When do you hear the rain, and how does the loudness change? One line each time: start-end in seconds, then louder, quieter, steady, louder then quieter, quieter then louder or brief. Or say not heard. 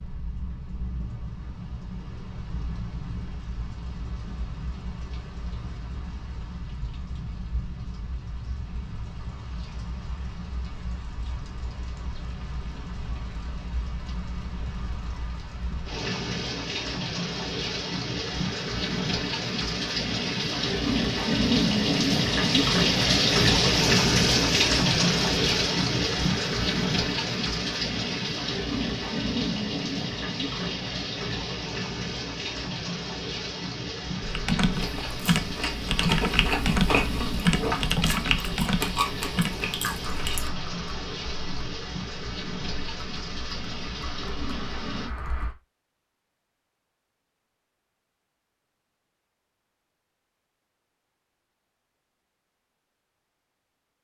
0.0-45.1 louder then quieter.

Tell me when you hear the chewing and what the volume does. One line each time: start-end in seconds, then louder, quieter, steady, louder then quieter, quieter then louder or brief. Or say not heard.
34.7-40.5 louder then quieter.